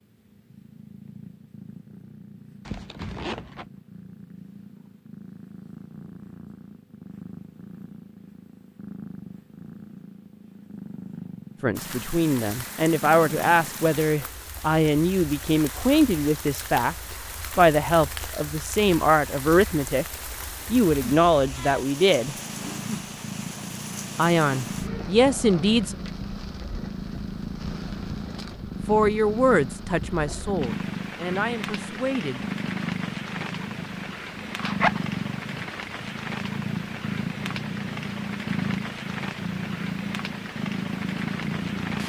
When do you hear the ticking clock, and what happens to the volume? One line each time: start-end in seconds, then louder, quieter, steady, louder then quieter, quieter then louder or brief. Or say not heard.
not heard.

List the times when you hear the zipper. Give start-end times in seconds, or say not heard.
2.6-3.6, 24.6-26.1, 34.5-35.1.